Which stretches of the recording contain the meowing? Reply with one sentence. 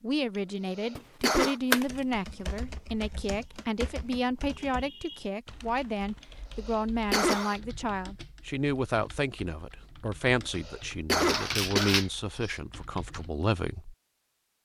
The meowing can't be heard in this clip.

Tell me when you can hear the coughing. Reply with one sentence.
The coughing can be heard from 0.8 to 1.6 s, from 6.7 to 7.6 s and from 10.2 to 12.1 s.